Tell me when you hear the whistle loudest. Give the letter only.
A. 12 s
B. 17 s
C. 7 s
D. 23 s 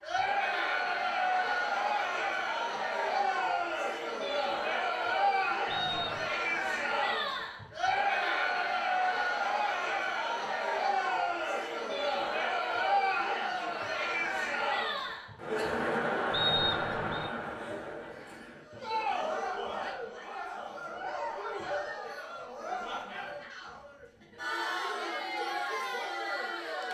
B.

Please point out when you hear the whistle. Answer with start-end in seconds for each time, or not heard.
5.7-6.3, 16.3-17.3.